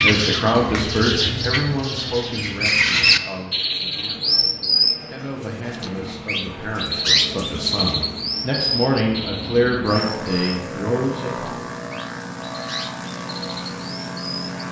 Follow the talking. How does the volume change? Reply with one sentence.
The loudness of the talking goes down, then up.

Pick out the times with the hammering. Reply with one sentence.
The hammering can't be heard in this clip.